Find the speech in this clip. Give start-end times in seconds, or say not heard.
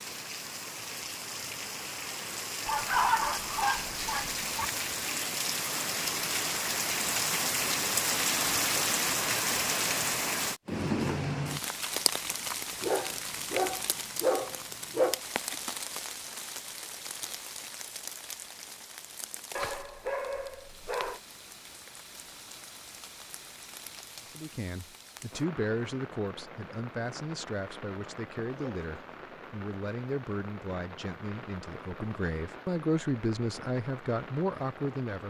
24.4-35.2.